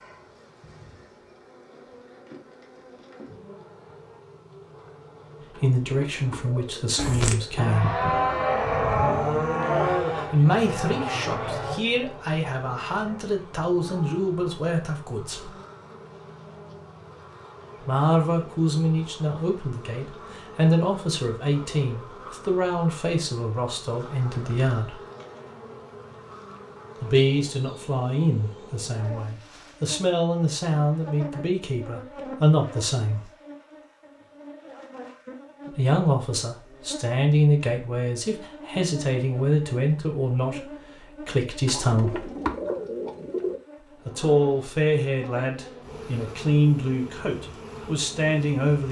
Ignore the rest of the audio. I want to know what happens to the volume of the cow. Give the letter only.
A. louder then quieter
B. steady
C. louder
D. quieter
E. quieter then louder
D.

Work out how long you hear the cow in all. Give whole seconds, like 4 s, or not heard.
7 s.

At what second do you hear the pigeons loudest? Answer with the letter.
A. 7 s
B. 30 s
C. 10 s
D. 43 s
D.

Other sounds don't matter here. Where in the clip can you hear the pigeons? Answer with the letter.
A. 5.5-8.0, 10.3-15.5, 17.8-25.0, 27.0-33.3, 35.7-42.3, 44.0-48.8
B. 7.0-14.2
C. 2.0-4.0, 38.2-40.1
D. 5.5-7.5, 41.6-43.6
D.